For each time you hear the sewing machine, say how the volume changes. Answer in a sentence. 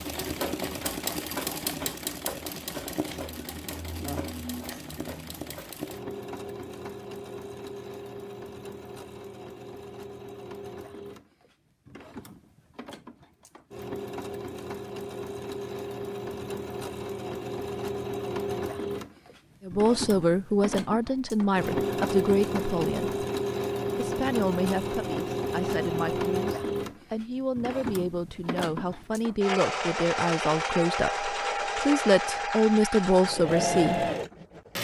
You can hear the sewing machine from 0.0 to 34.7 s, getting quieter then louder.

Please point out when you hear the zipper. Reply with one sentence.
The zipper can't be heard in this clip.